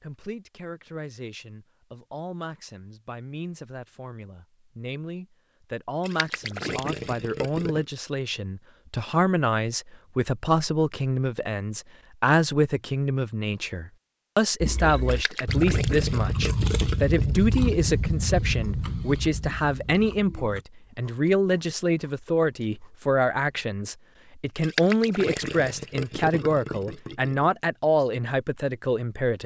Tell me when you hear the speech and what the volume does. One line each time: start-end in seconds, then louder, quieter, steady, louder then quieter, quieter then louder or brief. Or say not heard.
0.0-29.4 louder.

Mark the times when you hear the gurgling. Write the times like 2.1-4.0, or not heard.
6.0-7.8, 15.1-17.9, 24.6-27.5.